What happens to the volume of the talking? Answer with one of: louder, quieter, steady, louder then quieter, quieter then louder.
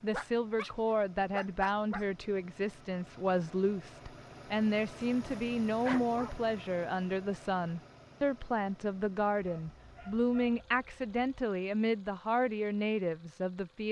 steady.